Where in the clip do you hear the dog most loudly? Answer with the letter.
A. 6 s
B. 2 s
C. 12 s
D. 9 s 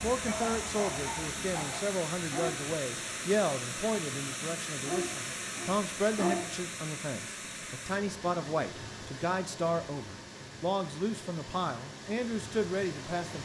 A.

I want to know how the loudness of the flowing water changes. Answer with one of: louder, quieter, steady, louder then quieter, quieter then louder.
quieter.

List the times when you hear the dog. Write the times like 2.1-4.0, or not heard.
0.0-2.6, 4.8-6.6.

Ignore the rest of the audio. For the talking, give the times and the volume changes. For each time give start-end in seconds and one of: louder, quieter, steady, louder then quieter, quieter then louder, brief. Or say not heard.
0.0-13.4 steady.